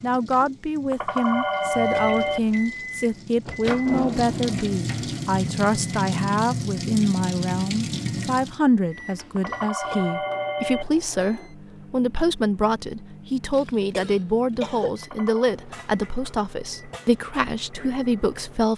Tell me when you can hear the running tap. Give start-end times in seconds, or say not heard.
0.0-8.6.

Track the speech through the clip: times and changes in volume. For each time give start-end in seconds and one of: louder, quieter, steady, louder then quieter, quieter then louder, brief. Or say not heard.
0.0-18.7 steady.